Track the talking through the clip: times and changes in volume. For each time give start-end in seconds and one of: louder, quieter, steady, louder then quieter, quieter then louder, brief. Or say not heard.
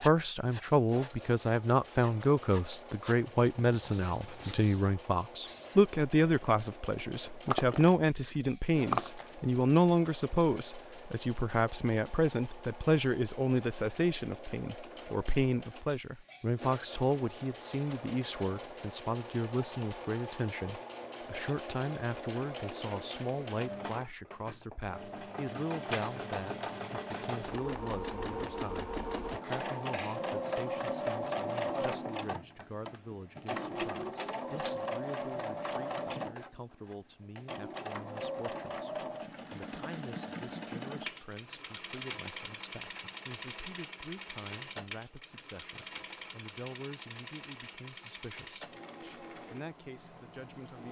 0.0-50.8 quieter.